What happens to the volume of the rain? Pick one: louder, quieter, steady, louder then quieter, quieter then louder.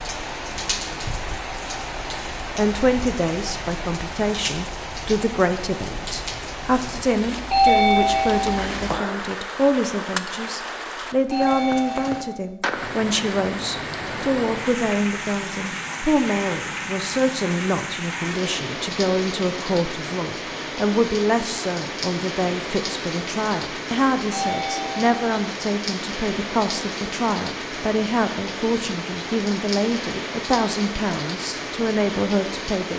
steady.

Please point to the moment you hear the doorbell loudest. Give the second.
8 s.